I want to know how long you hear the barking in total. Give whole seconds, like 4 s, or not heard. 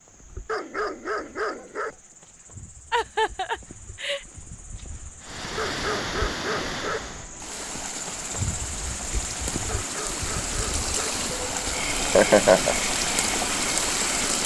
5 s.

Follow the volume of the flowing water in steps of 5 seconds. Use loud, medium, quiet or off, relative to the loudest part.
off, medium, loud.